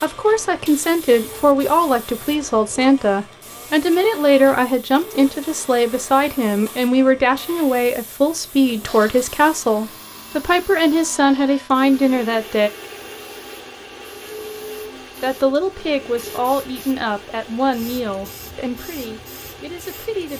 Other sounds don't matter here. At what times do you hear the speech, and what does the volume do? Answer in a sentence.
You can hear the speech from 0.0 to 12.7 s, at a steady volume; and from 15.2 to 20.3 s, getting quieter.